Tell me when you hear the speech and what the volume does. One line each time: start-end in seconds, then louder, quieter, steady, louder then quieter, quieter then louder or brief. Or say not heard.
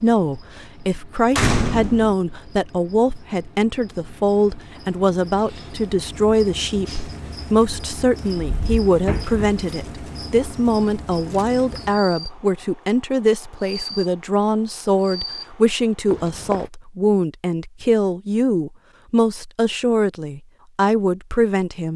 0.0-21.9 steady.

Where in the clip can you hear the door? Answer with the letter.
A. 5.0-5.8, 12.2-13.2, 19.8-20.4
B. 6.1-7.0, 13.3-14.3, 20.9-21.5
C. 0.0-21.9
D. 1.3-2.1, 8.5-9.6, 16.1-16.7
D.